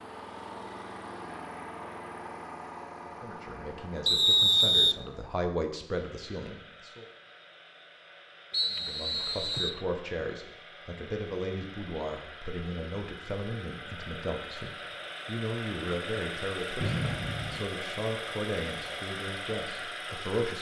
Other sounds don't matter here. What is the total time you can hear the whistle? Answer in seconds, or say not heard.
3 s.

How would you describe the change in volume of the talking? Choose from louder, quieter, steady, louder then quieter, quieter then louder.
steady.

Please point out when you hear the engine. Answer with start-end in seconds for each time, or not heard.
0.0-20.5.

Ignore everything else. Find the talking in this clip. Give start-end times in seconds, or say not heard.
3.0-7.0, 8.7-20.5.